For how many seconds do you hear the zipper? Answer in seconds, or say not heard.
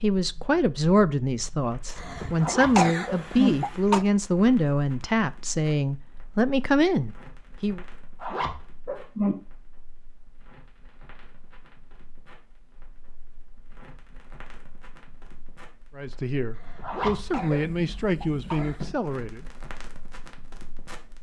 3 s.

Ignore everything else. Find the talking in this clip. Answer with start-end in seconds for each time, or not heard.
0.0-7.8, 15.9-19.4.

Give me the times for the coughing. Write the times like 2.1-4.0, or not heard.
1.9-4.0, 16.5-19.0.